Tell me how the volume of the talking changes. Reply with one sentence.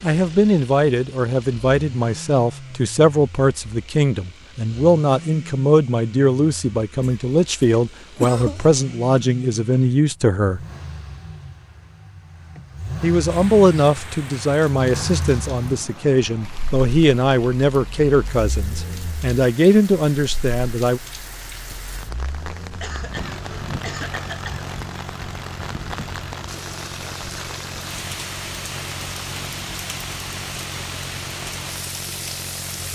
The loudness of the talking stays about the same.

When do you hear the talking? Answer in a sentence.
The talking can be heard from 0.0 to 10.6 s and from 13.0 to 21.0 s.